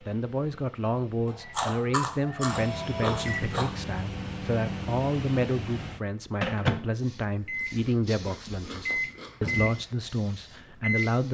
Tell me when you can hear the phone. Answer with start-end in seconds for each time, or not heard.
2.5-3.4.